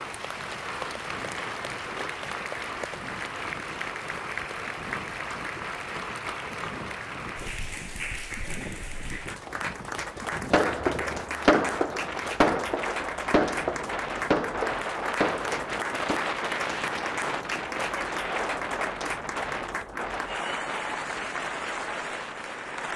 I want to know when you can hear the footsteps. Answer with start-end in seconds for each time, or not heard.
not heard.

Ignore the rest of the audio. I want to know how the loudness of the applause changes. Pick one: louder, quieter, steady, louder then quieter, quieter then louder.
steady.